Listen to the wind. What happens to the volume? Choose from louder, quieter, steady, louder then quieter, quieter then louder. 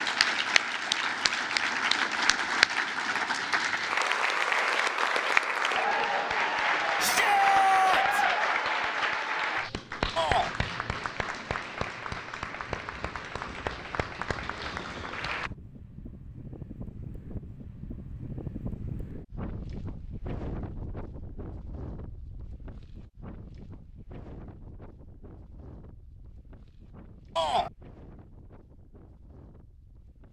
louder then quieter.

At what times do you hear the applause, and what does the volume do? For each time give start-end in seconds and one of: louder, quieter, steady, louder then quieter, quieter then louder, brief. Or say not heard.
0.0-15.5 quieter.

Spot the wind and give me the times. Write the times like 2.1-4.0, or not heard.
12.6-30.2.